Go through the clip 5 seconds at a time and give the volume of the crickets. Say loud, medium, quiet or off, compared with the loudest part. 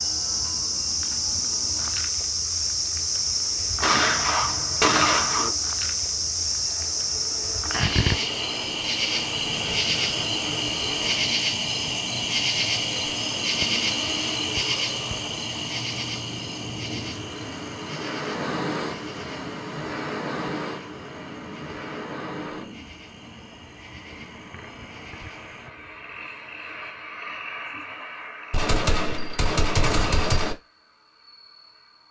loud, loud, loud, medium, quiet, quiet, quiet.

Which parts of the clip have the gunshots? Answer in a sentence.
The gunshots can be heard from 3.8 to 5.5 s and from 28.5 to 30.6 s.